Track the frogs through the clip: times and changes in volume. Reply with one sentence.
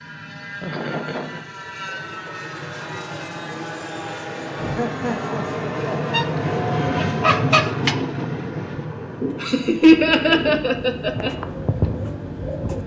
The frogs can't be heard in this clip.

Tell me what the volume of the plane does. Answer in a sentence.
The loudness of the plane goes up, then down.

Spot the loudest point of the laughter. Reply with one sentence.
The loudest moment of the laughter is at 10 seconds.